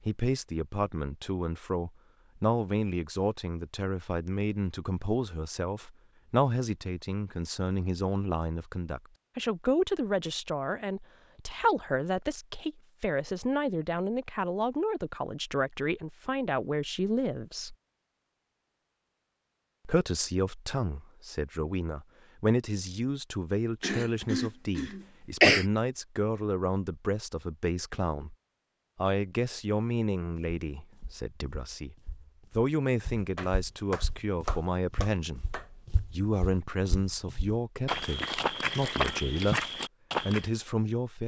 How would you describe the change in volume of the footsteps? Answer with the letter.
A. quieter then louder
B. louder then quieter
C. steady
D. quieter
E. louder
E.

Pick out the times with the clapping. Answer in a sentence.
You can hear the clapping from 33.4 to 35.7 s.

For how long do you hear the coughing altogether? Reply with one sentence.
You can hear the coughing for 2 seconds altogether.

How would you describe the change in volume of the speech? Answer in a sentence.
The loudness of the speech stays about the same.